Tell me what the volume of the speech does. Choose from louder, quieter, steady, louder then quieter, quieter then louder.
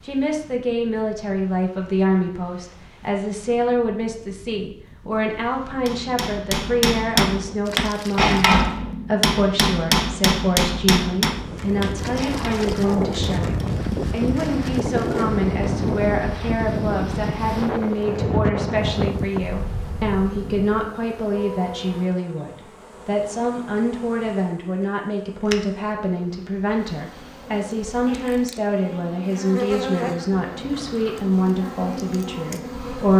steady.